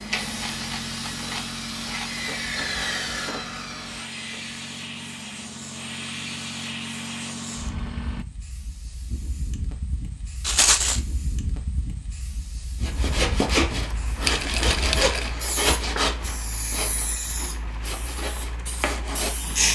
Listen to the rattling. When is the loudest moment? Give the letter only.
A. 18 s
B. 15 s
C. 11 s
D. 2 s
C.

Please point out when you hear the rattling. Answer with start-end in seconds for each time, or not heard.
0.1-2.2, 10.4-11.0, 14.2-15.3.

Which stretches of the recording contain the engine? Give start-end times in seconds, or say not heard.
0.0-8.2, 12.9-19.6.